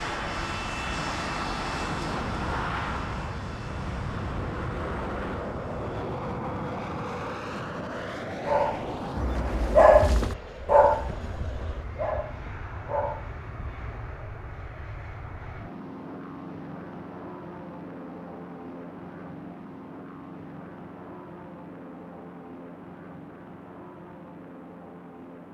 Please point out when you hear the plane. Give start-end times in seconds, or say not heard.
0.0-25.4.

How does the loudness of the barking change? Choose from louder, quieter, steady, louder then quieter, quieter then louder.
louder then quieter.